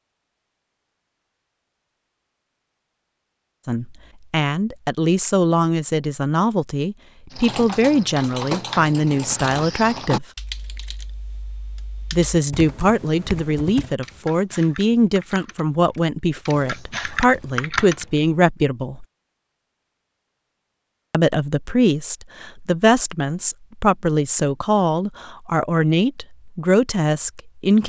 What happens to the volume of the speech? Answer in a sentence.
The volume of the speech stays about the same.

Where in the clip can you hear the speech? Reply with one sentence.
The speech can be heard from 3.6 to 10.2 s, from 12.1 to 19.1 s and from 21.1 to 27.8 s.